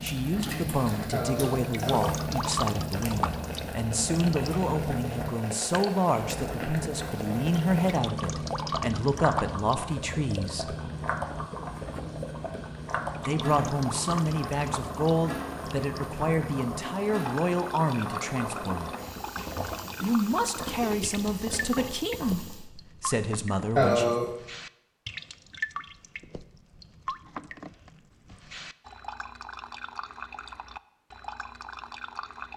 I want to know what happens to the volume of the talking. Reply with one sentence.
The volume of the talking stays about the same.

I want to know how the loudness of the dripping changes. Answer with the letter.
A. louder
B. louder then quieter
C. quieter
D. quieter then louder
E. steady
C.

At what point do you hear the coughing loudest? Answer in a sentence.
The loudest moment of the coughing is at 24 seconds.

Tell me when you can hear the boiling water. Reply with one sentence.
The boiling water can be heard from 0.0 to 22.7 s.